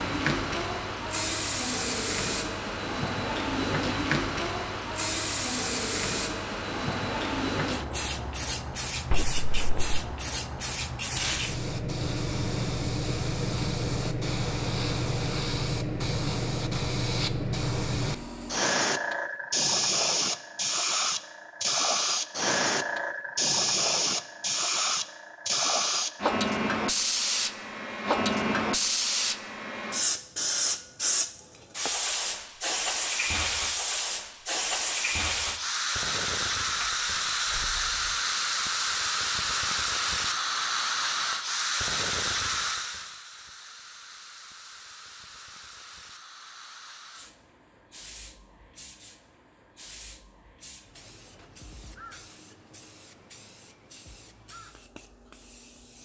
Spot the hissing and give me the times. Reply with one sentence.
You can hear the hissing from 0.0 to 55.9 s.